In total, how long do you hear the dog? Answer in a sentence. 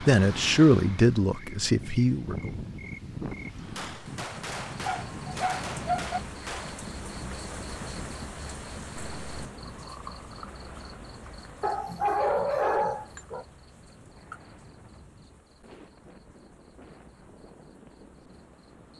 The dog can be heard for 3 seconds in total.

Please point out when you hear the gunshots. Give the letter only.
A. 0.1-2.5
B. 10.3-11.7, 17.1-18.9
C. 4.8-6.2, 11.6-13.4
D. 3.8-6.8
D.